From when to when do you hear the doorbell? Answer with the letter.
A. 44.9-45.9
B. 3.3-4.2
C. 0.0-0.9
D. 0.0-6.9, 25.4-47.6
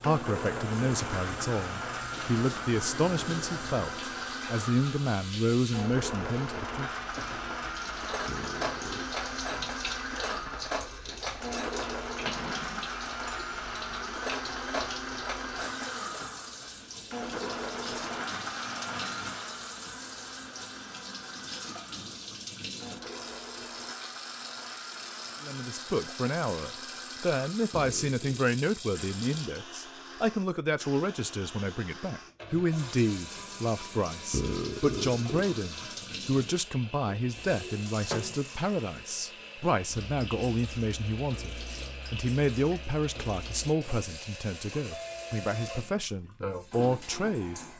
A.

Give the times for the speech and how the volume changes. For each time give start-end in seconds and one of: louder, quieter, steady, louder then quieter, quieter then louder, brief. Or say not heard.
0.0-6.9 steady
25.4-47.6 steady.